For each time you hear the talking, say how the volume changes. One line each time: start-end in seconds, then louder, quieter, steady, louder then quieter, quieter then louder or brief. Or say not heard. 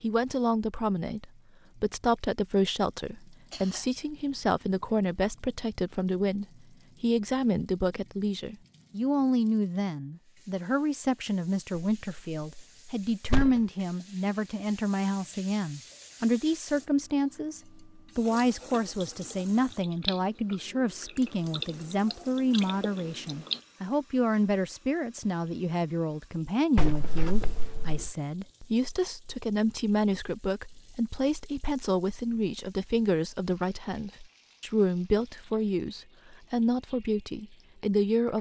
0.0-38.3 steady.